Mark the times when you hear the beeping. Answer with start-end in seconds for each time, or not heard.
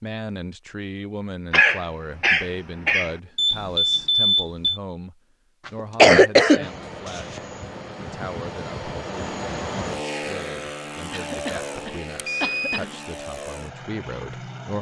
3.4-4.8, 11.3-12.8.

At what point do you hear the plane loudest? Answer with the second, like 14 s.
10 s.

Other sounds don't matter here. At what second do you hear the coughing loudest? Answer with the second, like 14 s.
6 s.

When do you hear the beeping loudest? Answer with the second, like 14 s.
4 s.